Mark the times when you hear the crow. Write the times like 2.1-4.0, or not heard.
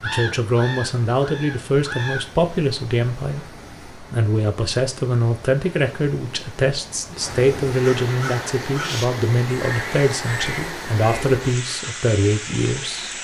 0.0-2.2, 7.8-11.3.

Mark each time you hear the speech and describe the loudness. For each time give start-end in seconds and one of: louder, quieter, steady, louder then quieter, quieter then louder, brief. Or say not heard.
0.0-13.1 steady.